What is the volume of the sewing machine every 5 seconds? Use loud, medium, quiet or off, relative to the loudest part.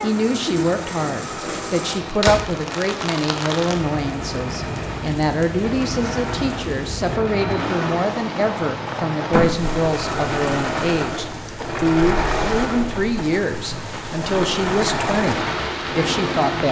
medium, medium, loud, loud.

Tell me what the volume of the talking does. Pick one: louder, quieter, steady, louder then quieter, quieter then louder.
steady.